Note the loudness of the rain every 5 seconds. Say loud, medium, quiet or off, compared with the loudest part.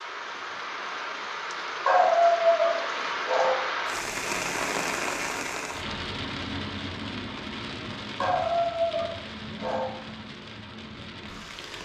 loud, loud, medium.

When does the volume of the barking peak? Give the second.
2 s.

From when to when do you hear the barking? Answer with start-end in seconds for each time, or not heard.
1.9-3.6, 8.2-9.9.